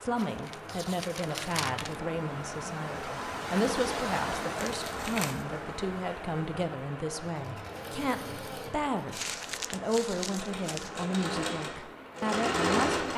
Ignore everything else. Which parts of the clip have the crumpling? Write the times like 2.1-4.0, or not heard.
0.1-2.0, 4.5-5.5, 9.1-11.1.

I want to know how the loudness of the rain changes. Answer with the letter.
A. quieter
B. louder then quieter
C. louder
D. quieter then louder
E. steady
B.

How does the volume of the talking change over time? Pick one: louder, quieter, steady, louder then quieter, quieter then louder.
steady.